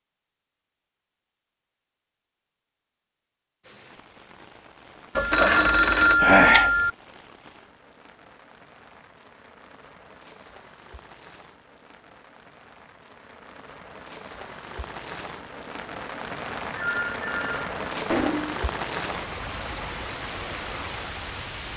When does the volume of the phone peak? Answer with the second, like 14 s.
6 s.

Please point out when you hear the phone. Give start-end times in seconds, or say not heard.
5.2-6.9, 16.8-18.6.